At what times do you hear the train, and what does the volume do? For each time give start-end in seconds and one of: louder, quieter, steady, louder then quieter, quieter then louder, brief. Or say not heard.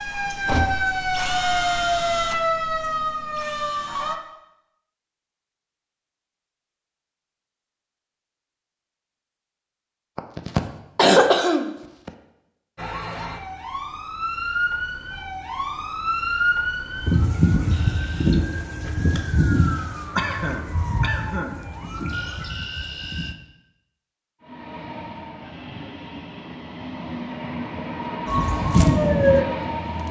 24.4-30.0 louder.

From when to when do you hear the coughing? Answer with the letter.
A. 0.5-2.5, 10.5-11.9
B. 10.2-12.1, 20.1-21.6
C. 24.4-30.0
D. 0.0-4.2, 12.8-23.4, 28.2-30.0
B.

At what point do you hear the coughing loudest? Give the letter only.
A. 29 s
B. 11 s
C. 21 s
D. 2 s
B.